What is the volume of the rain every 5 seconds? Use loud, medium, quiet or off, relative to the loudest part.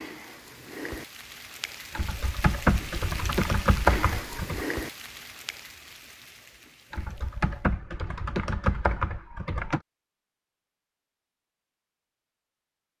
loud, medium, off.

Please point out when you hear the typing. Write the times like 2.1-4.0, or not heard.
1.9-4.7, 6.9-9.8.